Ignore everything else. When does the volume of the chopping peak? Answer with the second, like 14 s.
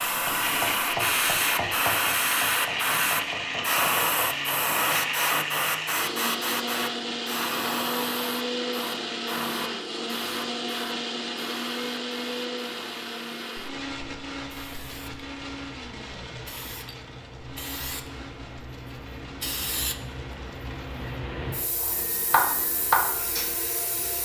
23 s.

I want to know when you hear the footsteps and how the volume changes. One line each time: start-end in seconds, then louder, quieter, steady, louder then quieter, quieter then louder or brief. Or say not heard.
not heard.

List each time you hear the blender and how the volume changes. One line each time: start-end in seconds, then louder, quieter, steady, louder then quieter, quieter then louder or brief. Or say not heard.
0.2-24.2 quieter.